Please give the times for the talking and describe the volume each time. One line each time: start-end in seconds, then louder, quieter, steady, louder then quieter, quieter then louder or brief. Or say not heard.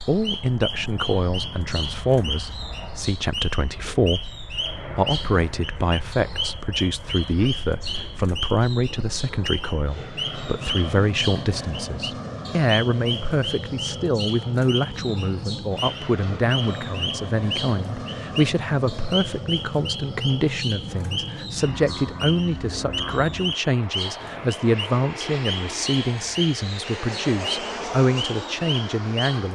0.1-29.4 steady.